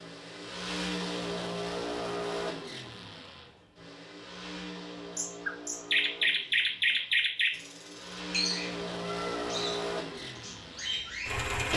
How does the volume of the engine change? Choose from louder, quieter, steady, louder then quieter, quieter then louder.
quieter then louder.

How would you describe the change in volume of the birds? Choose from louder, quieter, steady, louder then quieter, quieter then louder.
quieter.